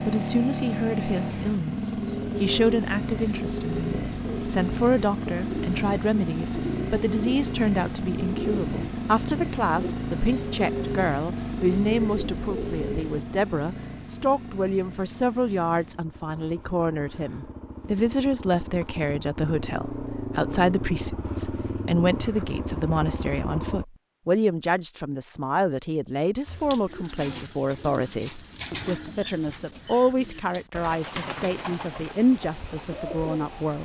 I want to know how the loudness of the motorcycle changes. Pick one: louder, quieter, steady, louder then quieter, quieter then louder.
quieter then louder.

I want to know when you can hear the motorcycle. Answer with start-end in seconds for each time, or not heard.
0.0-23.9.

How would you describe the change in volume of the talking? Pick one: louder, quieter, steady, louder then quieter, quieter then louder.
steady.